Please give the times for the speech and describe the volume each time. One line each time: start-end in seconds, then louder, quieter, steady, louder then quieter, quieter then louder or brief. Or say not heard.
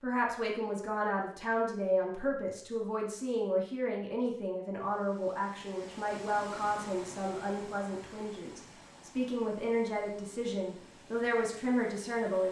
0.0-12.4 steady.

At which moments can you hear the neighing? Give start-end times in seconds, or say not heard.
not heard.